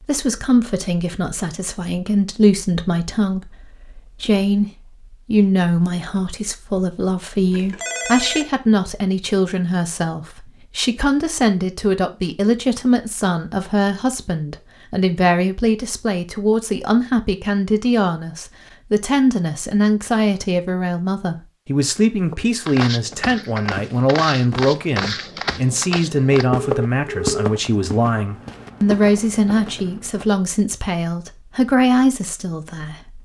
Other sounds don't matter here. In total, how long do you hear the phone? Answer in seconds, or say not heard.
2 s.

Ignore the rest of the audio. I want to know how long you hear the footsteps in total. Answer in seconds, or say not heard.
8 s.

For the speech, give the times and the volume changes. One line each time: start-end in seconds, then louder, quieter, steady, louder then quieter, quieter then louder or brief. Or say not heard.
0.0-33.2 steady.